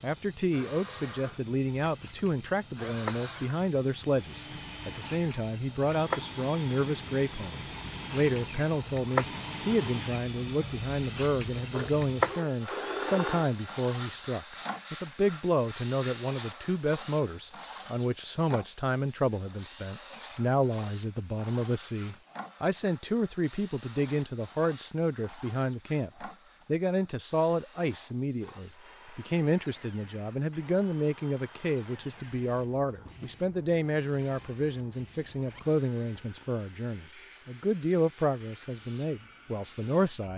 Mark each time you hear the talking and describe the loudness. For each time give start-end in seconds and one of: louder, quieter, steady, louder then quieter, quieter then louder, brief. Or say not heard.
0.0-40.3 steady.